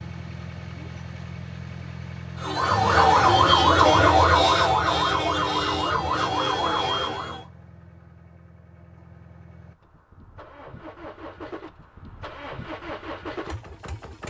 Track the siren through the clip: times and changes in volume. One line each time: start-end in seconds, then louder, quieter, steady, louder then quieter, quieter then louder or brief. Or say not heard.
2.4-7.5 quieter.